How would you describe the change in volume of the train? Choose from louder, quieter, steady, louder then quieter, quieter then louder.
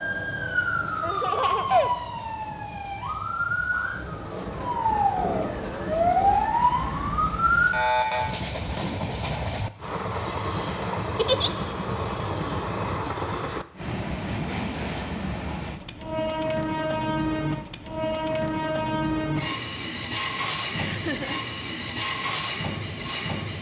louder.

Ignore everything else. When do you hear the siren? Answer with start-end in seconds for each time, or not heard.
0.0-8.2.